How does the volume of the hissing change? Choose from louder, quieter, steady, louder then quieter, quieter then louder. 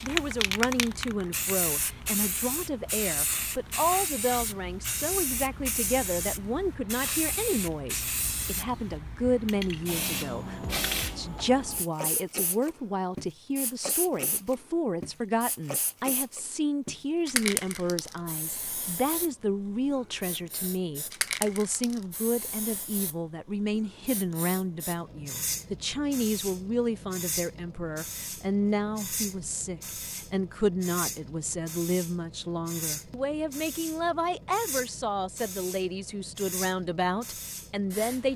quieter.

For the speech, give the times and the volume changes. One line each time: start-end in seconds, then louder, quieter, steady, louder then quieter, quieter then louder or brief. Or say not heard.
0.0-38.3 steady.